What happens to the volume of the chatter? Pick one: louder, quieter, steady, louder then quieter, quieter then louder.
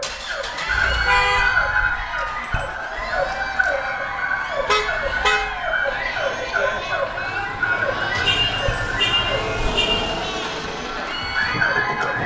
steady.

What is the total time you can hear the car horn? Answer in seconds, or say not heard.
3 s.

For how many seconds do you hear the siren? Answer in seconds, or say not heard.
12 s.